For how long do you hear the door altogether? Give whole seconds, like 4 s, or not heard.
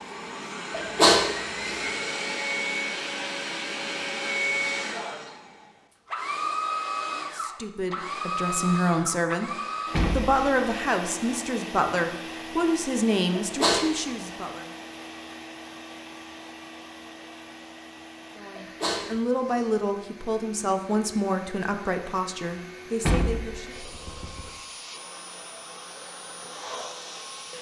2 s.